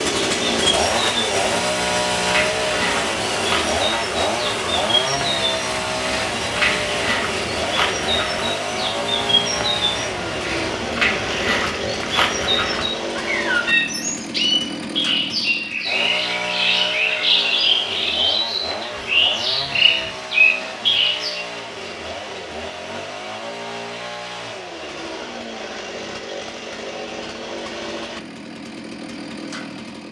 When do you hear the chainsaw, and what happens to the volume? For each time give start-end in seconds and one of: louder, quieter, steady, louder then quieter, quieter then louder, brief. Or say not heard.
0.0-30.0 quieter.